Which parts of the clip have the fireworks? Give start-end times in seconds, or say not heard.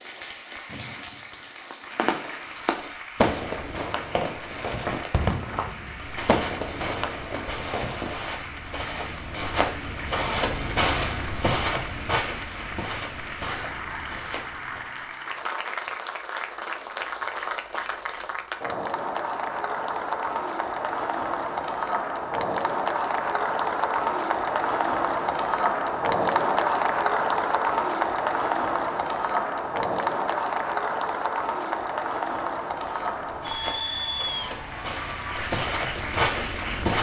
0.7-8.2.